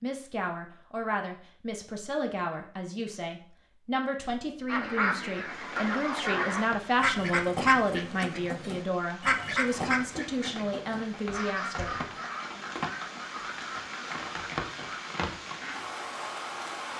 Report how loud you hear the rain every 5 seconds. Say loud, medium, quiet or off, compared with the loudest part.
off, medium, loud, loud.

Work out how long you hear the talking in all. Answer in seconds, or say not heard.
12 s.